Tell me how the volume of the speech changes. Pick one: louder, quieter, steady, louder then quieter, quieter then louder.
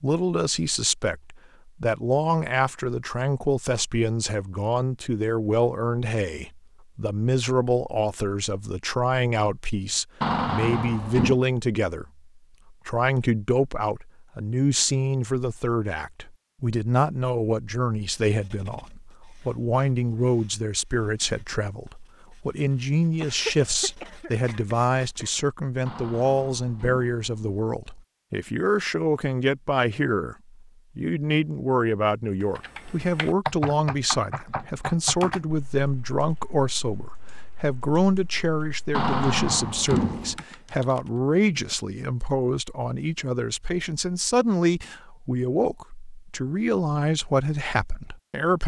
steady.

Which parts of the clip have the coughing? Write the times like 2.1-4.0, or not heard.
23.2-25.4.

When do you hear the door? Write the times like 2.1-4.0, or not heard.
10.2-11.4, 25.9-27.6, 38.9-40.4.